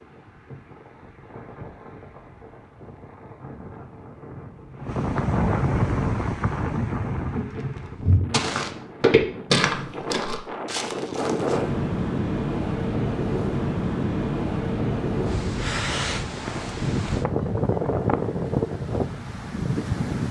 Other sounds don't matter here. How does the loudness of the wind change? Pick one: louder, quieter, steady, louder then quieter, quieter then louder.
louder.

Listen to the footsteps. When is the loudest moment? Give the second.
9 s.